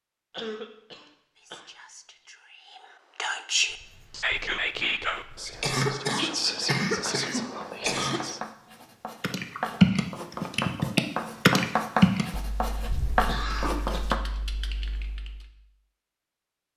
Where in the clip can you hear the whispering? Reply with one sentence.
The whispering can be heard from 1.4 to 8.4 s.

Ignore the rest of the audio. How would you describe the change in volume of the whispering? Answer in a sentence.
The volume of the whispering goes up, then down.